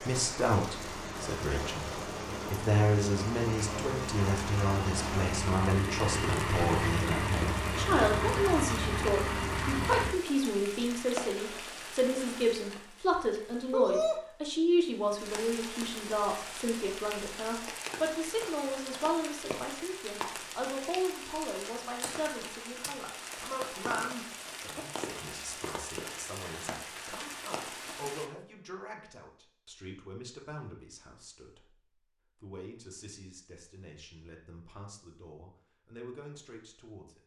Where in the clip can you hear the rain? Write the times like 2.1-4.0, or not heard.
0.0-28.3.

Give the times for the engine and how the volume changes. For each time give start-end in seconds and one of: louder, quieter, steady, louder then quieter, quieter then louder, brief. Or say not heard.
0.1-10.2 louder.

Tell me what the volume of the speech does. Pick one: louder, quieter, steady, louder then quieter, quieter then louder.
quieter.